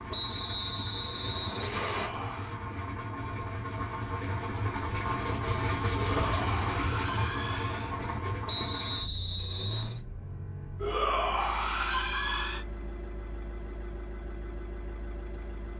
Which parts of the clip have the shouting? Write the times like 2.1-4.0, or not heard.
1.6-2.6, 6.0-8.0, 10.8-12.7.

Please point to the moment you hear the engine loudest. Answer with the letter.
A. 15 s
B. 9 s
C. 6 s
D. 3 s
C.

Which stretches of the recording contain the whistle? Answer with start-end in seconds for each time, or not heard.
0.1-2.1, 8.4-10.0.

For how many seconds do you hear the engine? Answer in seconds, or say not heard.
16 s.